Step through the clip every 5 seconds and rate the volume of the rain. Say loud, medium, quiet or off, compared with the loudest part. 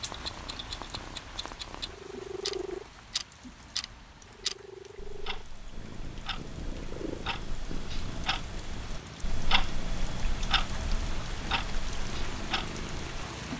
medium, medium, loud.